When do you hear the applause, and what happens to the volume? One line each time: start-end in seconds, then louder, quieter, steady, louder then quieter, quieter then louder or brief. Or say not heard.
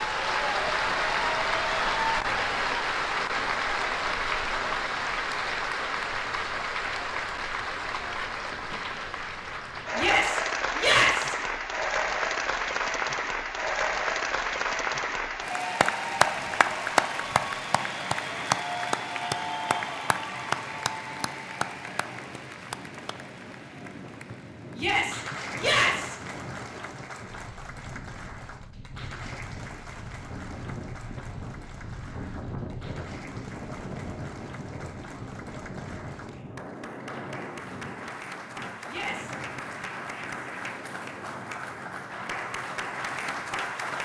0.0-43.9 quieter then louder.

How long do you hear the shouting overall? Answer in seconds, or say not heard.
3 s.